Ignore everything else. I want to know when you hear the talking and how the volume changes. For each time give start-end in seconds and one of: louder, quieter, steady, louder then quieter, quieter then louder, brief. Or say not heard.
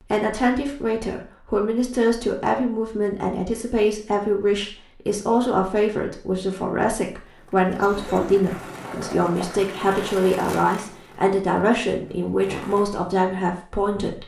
0.1-14.2 steady.